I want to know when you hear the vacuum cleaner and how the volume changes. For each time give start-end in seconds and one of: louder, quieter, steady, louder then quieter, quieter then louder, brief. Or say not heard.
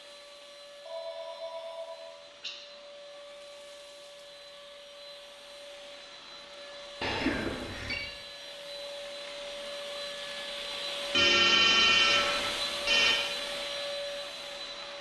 0.0-14.9 louder.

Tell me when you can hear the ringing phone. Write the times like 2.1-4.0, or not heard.
0.8-2.5, 7.0-8.0, 11.1-13.2.